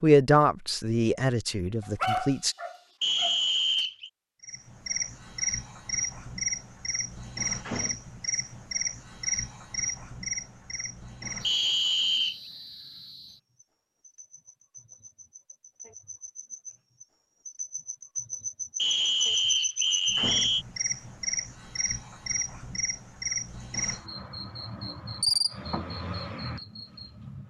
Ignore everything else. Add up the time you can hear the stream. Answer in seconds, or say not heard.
not heard.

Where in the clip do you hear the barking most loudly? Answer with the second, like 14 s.
2 s.